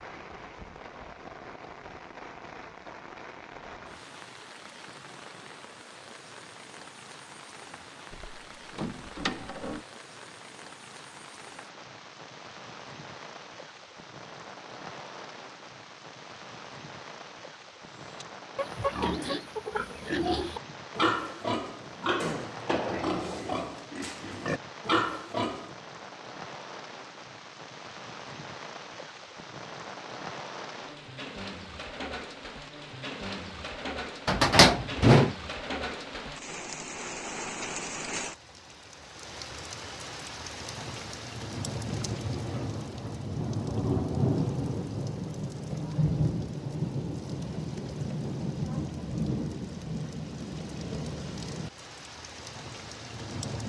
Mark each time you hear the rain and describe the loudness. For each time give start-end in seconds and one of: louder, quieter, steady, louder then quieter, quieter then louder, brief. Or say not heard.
0.0-53.6 louder.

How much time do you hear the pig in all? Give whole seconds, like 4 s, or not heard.
8 s.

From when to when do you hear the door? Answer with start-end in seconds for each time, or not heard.
8.1-9.8, 34.2-35.4.